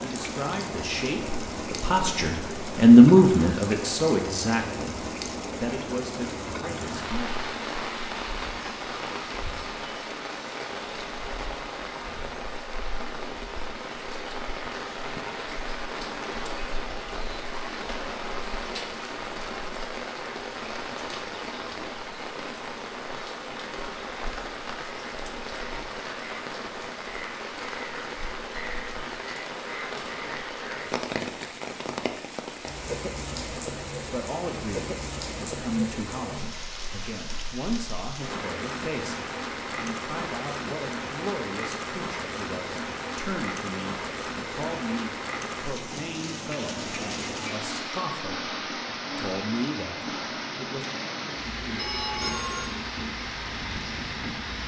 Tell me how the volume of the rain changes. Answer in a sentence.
The loudness of the rain stays about the same.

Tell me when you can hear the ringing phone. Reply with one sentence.
You can hear the ringing phone from 51.8 to 52.7 s.